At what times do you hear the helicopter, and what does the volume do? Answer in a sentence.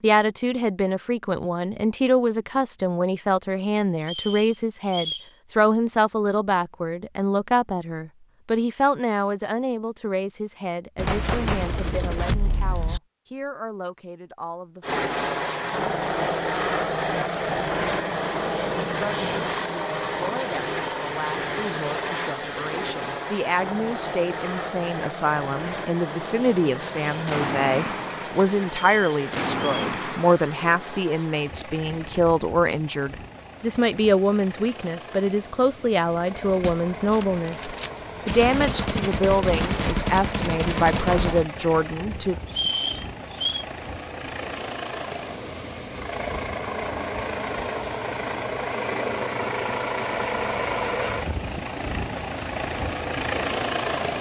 The helicopter can be heard from 14.8 to 54.1 s, getting quieter then louder.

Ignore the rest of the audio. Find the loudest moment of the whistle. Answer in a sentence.
The loudest moment of the whistle is at 43 seconds.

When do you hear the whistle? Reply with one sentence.
You can hear the whistle from 4.0 to 5.3 s, from 28.8 to 29.9 s and from 42.5 to 43.6 s.